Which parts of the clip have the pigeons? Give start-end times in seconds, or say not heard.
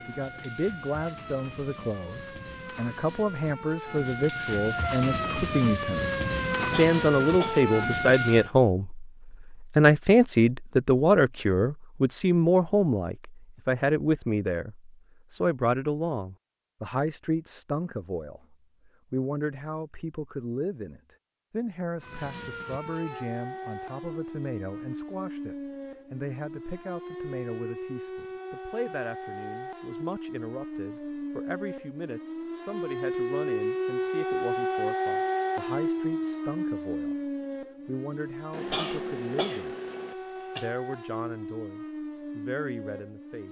not heard.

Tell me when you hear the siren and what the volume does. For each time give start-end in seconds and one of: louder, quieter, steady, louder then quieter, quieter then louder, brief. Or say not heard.
0.0-8.5 louder
22.0-43.4 louder then quieter.